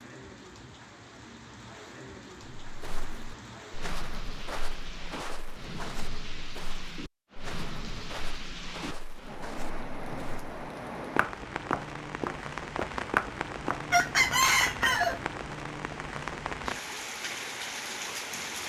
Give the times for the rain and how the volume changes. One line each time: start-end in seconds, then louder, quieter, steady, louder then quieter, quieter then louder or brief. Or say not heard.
0.0-18.6 louder.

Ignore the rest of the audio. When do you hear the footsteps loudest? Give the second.
13 s.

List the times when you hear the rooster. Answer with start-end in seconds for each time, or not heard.
13.9-15.2.